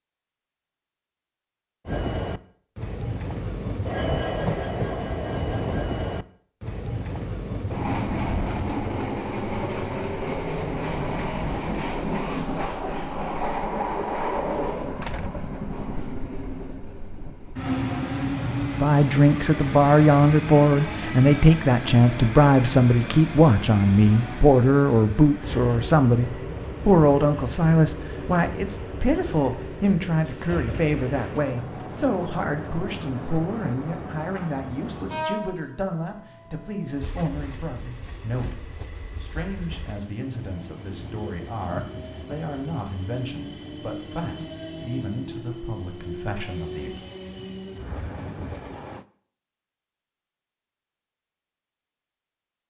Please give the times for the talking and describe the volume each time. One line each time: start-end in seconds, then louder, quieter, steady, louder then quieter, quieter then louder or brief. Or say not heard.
18.8-47.1 quieter.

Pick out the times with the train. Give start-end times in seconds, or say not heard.
1.9-49.0.